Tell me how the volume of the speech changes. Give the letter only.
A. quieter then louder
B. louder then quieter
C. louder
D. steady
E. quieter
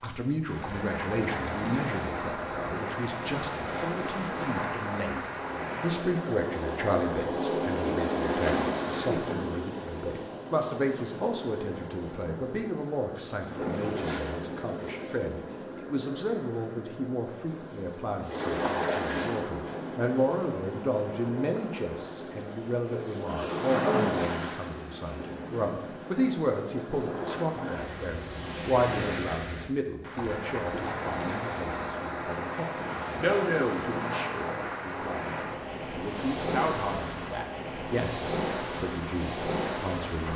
D.